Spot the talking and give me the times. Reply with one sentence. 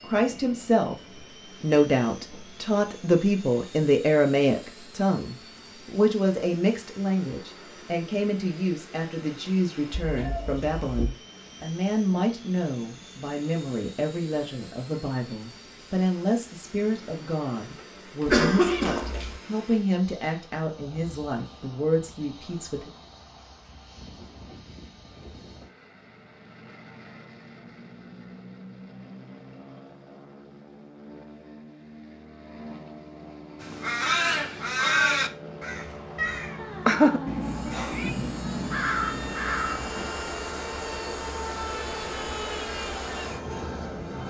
The talking can be heard from 0.0 to 22.9 s.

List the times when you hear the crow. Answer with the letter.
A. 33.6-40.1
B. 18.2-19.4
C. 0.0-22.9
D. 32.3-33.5
A.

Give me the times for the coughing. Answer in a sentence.
The coughing can be heard from 18.2 to 19.4 s.